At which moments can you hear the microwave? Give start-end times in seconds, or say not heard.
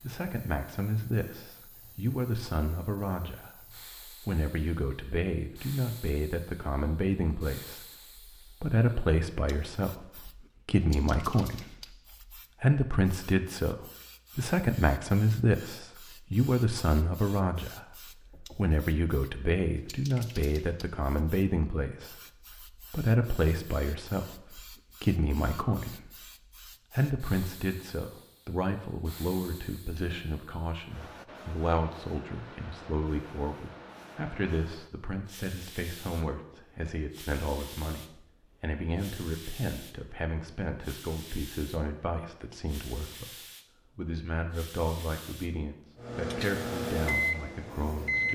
46.0-48.3.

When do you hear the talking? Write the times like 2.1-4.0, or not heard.
0.0-7.8, 8.5-11.9, 12.6-17.9, 18.6-22.1, 22.8-26.3, 26.9-48.3.